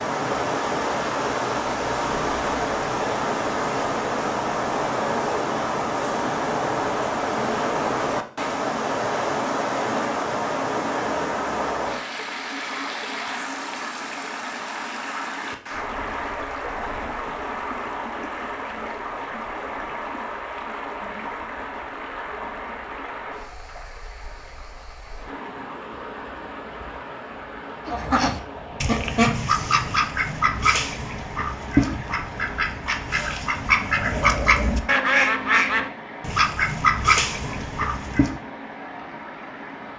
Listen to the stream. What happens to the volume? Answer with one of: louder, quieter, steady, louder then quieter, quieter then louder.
quieter.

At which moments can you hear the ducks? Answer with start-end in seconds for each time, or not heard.
27.9-38.4.